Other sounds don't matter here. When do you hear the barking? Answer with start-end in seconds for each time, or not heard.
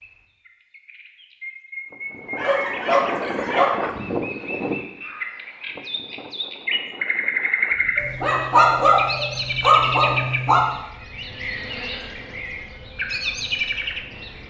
2.4-3.9, 8.0-10.7.